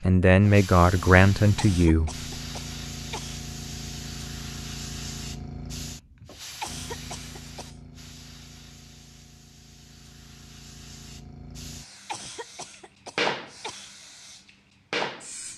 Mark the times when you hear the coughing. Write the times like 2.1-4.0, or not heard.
1.6-3.5, 6.6-7.8, 12.1-13.9.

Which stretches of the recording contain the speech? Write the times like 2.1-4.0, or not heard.
0.0-2.1.